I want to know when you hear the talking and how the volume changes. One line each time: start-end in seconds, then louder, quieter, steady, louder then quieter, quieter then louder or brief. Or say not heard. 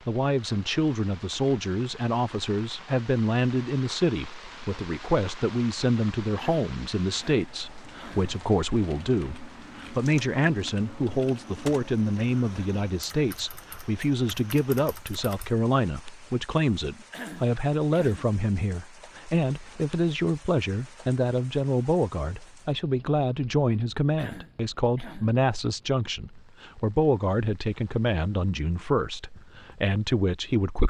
0.1-30.8 steady.